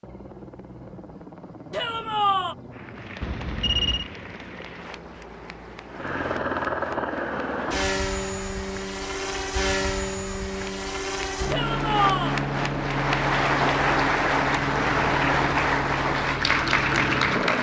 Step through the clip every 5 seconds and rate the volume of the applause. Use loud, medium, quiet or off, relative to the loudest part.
quiet, quiet, loud, loud.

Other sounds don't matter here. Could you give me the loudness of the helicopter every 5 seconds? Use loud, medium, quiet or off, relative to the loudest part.
quiet, loud, loud, loud.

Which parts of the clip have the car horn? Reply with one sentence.
The car horn can be heard from 3.2 to 4.1 s.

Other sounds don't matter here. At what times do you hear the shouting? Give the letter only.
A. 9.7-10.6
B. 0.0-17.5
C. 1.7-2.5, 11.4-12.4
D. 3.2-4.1
C.